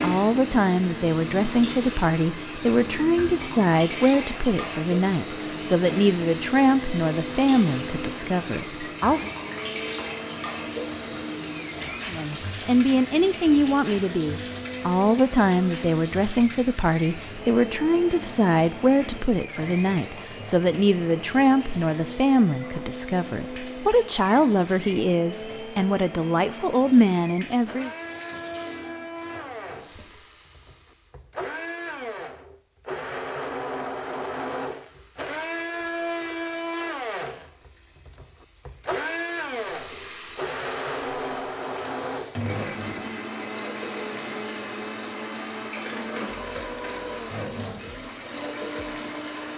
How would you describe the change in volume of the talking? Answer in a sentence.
The volume of the talking stays about the same.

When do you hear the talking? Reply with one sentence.
The talking can be heard from 0.0 to 9.3 s and from 12.1 to 27.9 s.